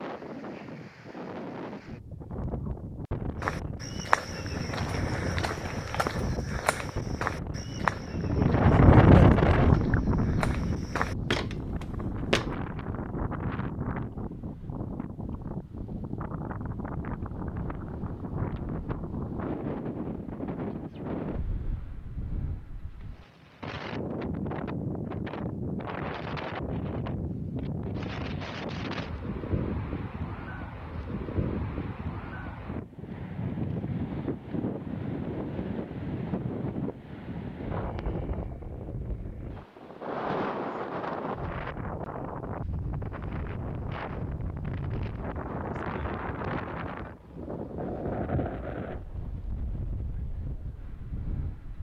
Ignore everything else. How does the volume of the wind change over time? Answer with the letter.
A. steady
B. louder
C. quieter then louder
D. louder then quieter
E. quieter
E.